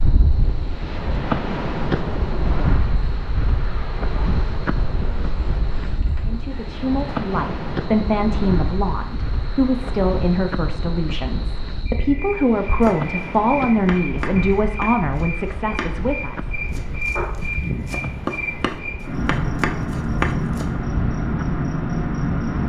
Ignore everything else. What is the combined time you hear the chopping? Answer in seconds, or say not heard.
8 s.